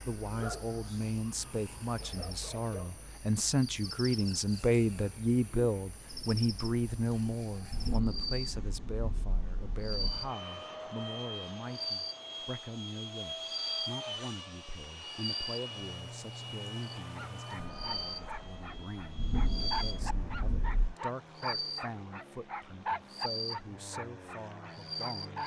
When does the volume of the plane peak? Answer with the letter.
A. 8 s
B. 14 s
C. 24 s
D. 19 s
B.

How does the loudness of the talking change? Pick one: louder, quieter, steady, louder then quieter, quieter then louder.
quieter.